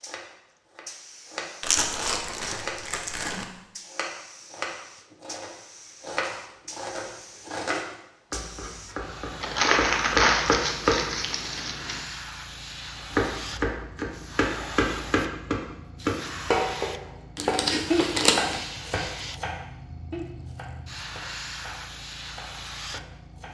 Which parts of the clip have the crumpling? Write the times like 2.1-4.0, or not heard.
1.6-3.5, 9.4-12.0, 17.4-18.6.